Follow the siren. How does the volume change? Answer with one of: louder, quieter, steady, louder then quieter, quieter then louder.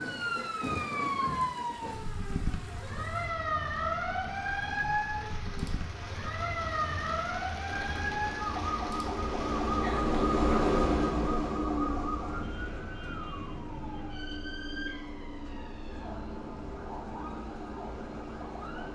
quieter.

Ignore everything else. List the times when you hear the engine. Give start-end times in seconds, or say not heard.
7.7-18.8.